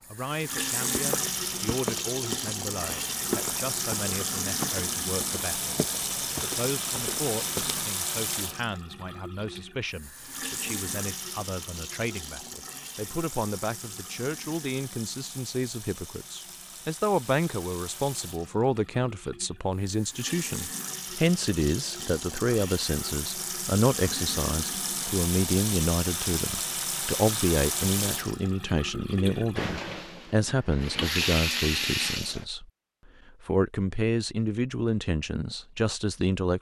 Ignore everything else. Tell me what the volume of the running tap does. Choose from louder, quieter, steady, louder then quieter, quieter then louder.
quieter then louder.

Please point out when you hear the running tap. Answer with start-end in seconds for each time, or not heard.
0.0-32.5.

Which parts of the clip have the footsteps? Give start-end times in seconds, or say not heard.
0.9-7.9.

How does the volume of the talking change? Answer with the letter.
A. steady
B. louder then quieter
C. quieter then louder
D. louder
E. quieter
D.